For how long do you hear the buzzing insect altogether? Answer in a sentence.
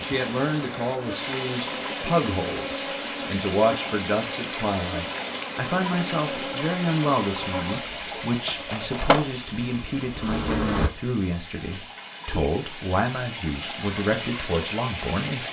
You can hear the buzzing insect for 11 seconds altogether.